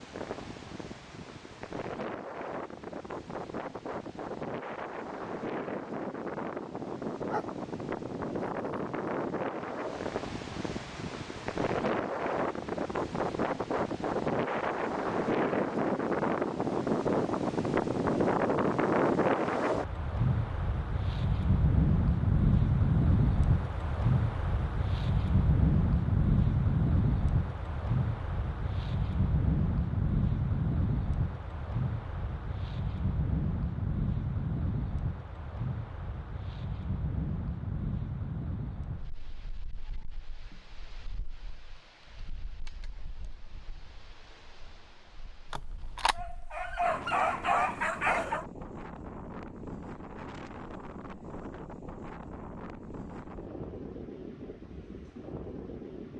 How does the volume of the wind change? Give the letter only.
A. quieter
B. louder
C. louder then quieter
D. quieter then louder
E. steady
C.